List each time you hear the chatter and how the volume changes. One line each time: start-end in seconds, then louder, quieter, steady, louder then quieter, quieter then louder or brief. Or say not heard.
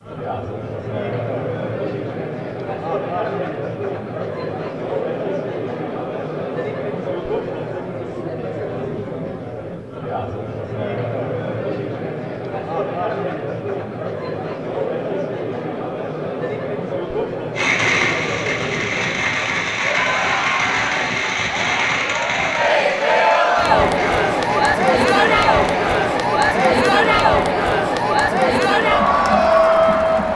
0.0-30.3 louder.